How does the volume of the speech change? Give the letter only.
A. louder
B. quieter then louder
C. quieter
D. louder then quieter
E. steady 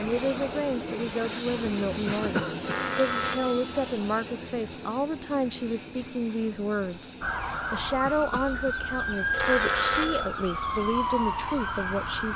E.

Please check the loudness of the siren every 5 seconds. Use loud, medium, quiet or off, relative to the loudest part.
off, loud, loud.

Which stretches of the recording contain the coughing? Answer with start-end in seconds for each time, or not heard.
2.0-2.8, 8.0-8.8.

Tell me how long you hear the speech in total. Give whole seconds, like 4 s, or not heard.
12 s.